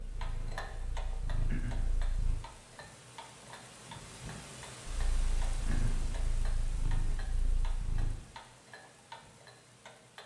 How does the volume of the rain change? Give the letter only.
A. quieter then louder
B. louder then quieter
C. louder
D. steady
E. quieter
B.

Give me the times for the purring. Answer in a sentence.
You can hear the purring from 0.0 to 2.4 s and from 4.8 to 8.2 s.